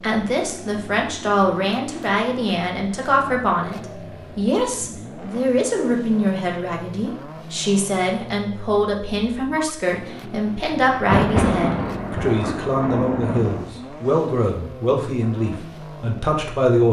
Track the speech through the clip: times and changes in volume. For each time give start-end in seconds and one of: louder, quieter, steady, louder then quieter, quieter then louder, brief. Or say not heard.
0.0-16.8 steady.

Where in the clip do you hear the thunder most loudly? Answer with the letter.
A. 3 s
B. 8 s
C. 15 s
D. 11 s
D.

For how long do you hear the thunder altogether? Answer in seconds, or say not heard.
3 s.